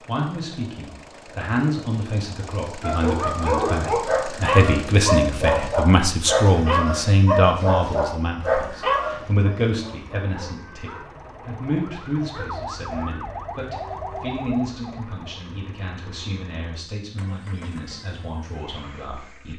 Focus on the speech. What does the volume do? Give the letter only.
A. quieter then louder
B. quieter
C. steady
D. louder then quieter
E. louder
D.